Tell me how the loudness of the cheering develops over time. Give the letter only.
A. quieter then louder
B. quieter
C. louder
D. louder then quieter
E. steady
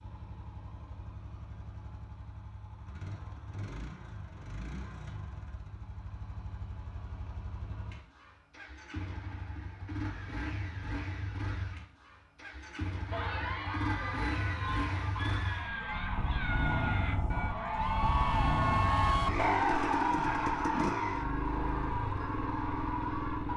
D.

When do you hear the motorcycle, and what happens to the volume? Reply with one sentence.
You can hear the motorcycle from 0.0 to 23.5 s, getting louder.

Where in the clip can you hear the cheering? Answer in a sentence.
The cheering can be heard from 13.1 to 23.5 s.